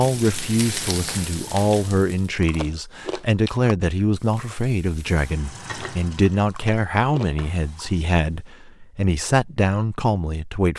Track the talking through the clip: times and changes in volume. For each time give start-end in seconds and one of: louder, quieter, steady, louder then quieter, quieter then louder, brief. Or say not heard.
0.0-10.7 steady.